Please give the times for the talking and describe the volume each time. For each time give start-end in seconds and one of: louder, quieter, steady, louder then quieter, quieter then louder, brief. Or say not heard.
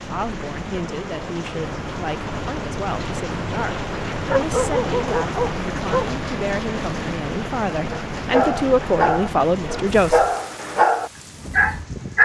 0.0-10.2 louder.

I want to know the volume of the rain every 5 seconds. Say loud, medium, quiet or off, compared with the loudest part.
loud, loud, medium.